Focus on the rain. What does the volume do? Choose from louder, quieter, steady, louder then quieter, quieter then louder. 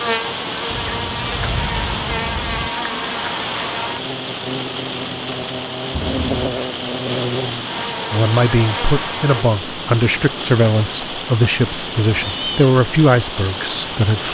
steady.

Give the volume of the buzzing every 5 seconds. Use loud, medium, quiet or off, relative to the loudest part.
loud, loud, off.